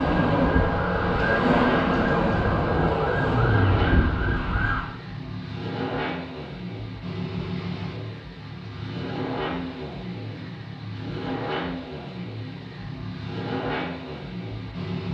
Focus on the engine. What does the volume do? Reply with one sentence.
The volume of the engine stays about the same.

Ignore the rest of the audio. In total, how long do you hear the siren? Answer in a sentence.
You can hear the siren for 5 seconds altogether.